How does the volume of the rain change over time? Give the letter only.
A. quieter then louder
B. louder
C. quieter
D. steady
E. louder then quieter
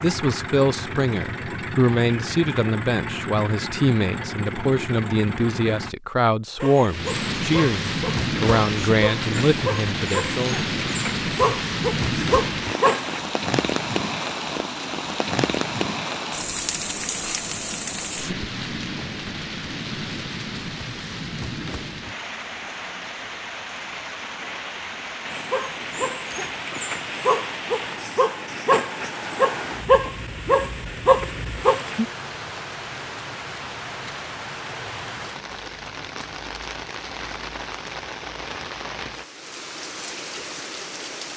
C.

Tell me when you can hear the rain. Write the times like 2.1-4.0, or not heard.
6.8-41.3.